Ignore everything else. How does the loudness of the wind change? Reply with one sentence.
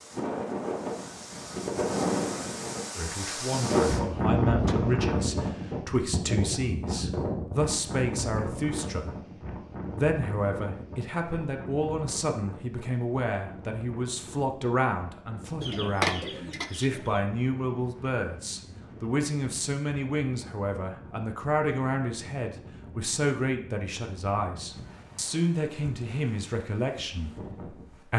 The volume of the wind goes down.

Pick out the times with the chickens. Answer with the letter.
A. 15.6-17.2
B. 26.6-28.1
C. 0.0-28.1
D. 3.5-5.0
A.